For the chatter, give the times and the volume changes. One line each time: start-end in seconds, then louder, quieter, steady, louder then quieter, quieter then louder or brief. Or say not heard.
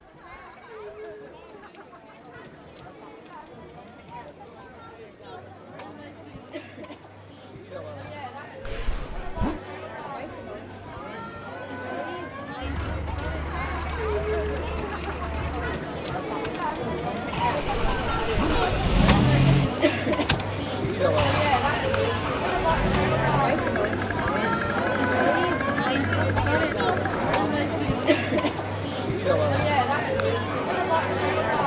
0.0-31.6 louder.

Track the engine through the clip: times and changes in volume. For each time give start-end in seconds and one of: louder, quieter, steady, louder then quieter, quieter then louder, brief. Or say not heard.
12.6-27.4 louder then quieter.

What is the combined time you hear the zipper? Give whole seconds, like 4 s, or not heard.
2 s.